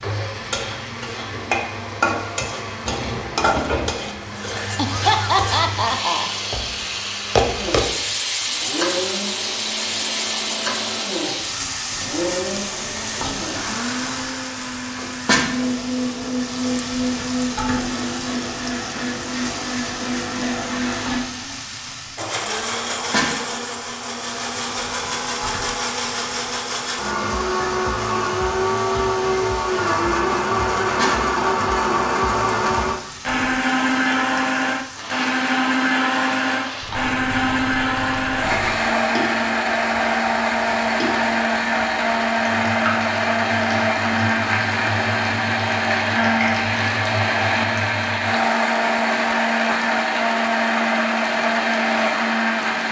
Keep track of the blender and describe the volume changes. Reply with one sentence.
The loudness of the blender goes up.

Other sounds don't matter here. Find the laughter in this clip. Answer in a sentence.
You can hear the laughter from 4.8 to 6.3 s.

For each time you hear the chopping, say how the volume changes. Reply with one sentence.
You can't hear the chopping here.